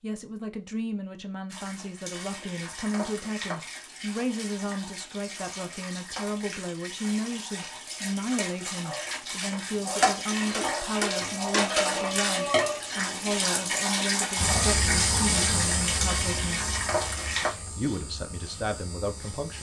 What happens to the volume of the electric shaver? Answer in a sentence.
The loudness of the electric shaver goes down.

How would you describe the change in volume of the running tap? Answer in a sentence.
The volume of the running tap goes up.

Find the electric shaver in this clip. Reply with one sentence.
You can hear the electric shaver from 14.3 to 19.5 s.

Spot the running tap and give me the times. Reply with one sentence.
You can hear the running tap from 1.5 to 17.5 s.